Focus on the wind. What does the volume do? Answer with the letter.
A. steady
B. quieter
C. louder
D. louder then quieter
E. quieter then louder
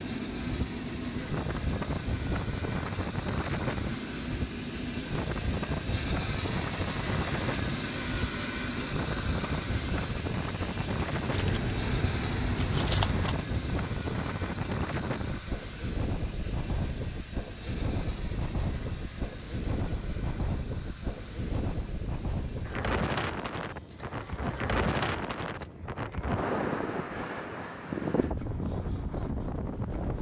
A.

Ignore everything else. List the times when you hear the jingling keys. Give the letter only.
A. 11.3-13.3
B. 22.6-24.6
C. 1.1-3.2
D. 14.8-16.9
A.